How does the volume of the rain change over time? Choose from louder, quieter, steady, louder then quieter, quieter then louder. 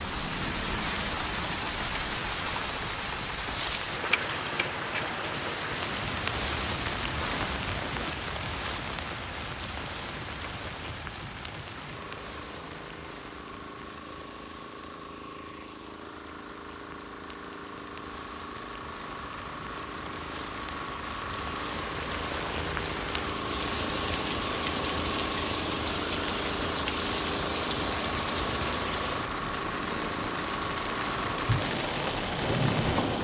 quieter then louder.